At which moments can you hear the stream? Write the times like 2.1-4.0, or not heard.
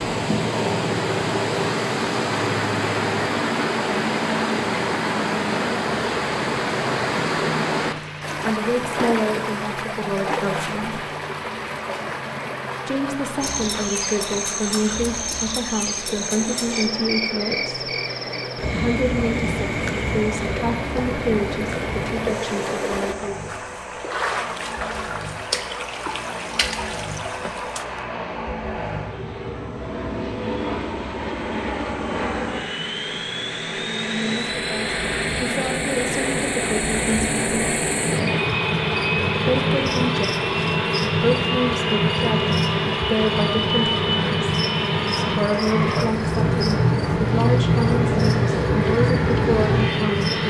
0.0-28.1.